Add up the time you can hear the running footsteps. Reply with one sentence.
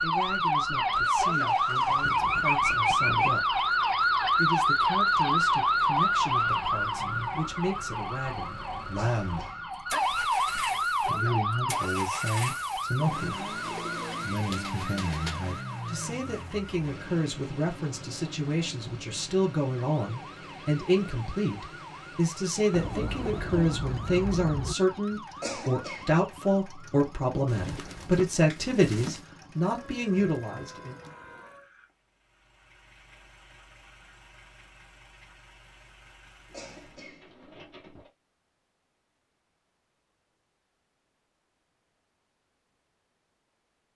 You can't hear the running footsteps here.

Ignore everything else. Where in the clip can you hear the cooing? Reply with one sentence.
You can hear the cooing from 2.0 to 3.4 s, from 13.7 to 15.5 s, from 22.7 to 24.8 s, from 27.4 to 29.2 s and from 36.5 to 38.1 s.